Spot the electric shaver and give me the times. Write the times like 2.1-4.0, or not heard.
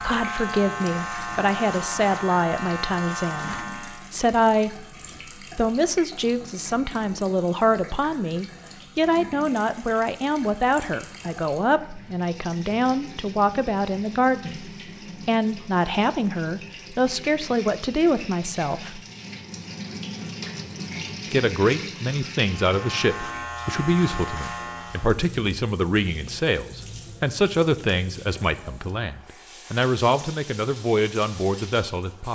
0.0-4.1, 22.4-25.2.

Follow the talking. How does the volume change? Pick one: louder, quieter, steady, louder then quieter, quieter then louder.
steady.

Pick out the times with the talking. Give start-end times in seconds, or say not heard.
0.0-5.0, 5.5-19.0, 21.3-32.3.